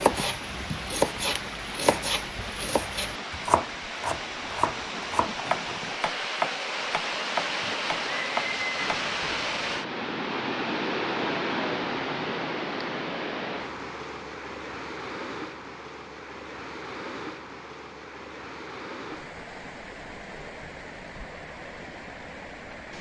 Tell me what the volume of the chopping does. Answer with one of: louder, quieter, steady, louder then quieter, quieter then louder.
steady.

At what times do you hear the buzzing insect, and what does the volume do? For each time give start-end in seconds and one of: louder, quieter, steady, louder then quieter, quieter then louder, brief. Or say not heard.
not heard.